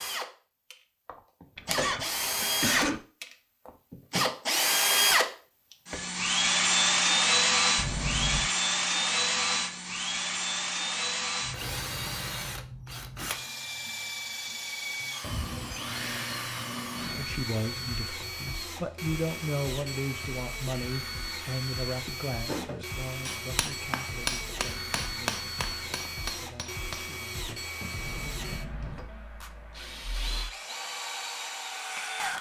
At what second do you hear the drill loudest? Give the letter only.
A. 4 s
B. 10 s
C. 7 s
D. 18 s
C.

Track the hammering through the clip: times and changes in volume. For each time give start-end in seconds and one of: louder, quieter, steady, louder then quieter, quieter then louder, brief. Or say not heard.
22.4-29.1 quieter.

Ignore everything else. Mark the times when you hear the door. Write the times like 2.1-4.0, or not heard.
7.8-8.5, 15.2-17.2, 27.9-29.1.